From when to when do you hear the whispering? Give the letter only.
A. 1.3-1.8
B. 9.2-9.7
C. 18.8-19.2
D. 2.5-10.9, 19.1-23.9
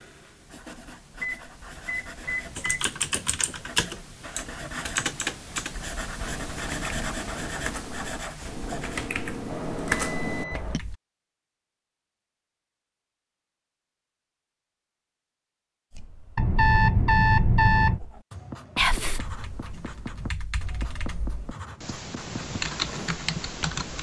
C.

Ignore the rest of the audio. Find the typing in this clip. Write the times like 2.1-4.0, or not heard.
2.5-10.9, 19.1-23.9.